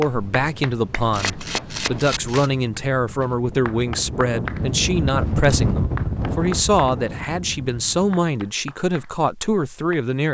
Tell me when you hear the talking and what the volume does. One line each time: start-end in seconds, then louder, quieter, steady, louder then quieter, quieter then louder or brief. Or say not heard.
0.0-10.3 steady.